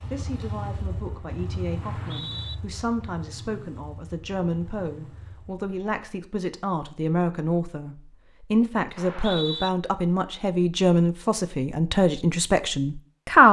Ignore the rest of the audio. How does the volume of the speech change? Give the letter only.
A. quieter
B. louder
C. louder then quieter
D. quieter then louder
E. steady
B.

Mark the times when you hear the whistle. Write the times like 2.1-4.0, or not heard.
1.8-2.5, 8.9-9.7.